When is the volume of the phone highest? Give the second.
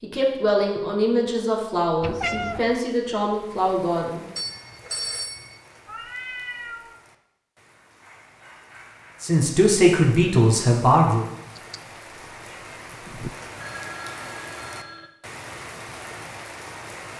5 s.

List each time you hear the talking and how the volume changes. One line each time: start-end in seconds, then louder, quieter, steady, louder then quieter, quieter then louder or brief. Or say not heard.
0.0-4.2 steady
9.2-11.2 brief.